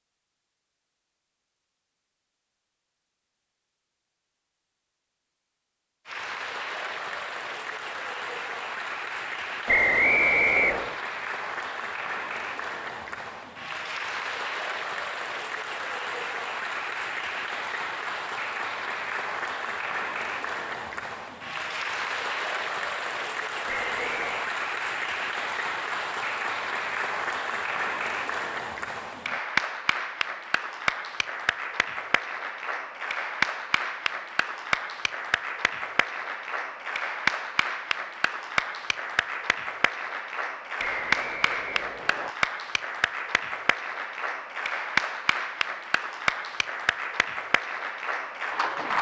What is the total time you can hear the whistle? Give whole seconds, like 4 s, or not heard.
4 s.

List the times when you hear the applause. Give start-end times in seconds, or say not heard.
6.0-48.9.